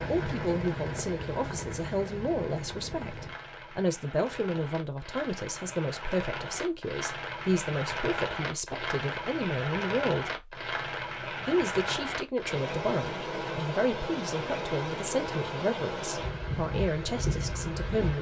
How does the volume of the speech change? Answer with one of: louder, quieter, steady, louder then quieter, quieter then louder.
steady.